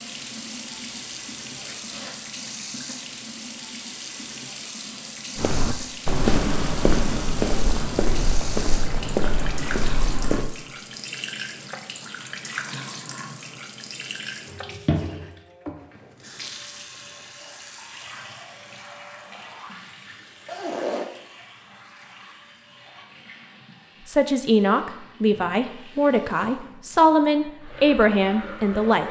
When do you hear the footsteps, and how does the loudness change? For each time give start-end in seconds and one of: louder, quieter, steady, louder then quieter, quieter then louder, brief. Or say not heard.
5.3-10.5 quieter.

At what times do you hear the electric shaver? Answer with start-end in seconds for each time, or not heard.
not heard.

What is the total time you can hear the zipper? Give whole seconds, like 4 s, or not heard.
2 s.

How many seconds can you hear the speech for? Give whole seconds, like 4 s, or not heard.
5 s.